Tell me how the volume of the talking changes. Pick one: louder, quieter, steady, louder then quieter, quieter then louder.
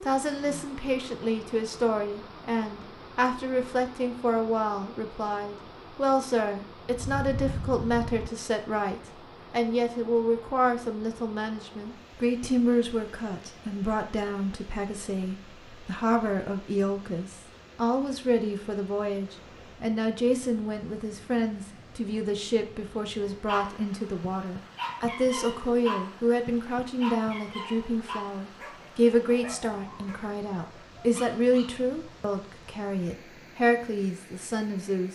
steady.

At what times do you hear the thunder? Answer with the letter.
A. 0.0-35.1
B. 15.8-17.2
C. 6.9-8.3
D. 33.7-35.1
C.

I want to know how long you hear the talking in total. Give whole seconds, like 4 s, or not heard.
35 s.